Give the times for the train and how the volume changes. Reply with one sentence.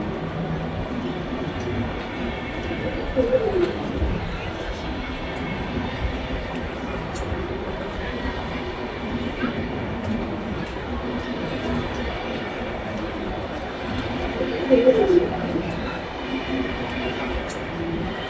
The train can be heard from 0.0 to 18.2 s, at a steady volume.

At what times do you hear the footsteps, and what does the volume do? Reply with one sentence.
You can't hear the footsteps here.